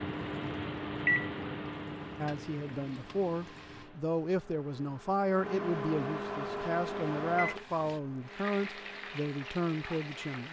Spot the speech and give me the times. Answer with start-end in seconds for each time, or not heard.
2.1-10.4.